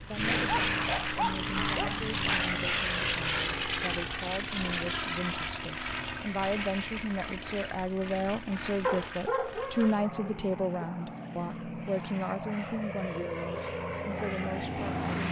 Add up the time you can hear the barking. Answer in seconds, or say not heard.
4 s.